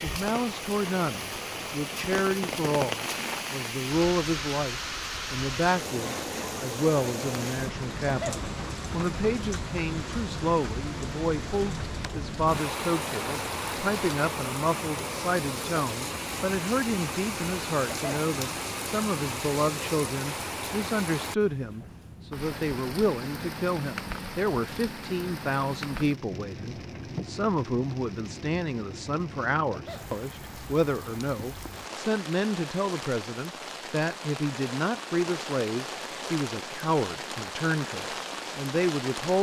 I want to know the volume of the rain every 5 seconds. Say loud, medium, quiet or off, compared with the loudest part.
loud, loud, loud, loud, loud, medium, medium, loud.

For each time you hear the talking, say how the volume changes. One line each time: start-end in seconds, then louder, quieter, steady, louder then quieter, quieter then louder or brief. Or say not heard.
0.0-39.3 steady.